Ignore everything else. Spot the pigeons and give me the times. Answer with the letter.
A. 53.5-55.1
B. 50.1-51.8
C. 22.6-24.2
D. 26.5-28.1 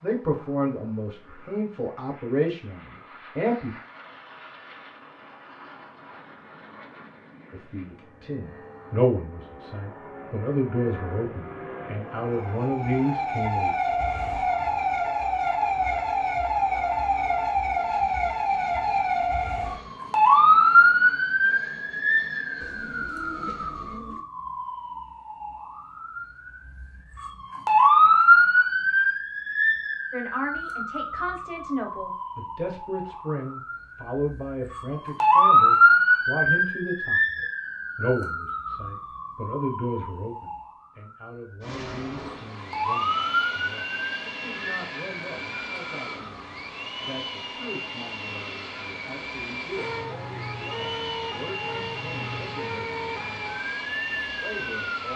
C.